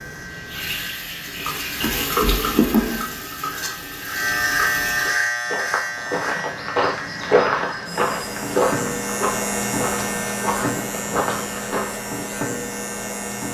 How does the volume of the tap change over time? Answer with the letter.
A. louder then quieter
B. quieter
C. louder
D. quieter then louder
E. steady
A.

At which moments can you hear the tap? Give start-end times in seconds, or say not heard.
0.0-5.2.